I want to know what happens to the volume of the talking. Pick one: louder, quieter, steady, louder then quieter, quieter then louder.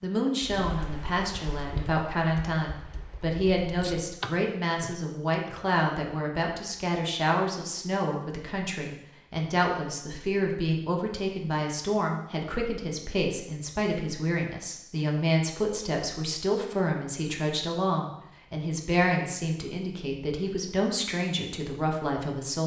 steady.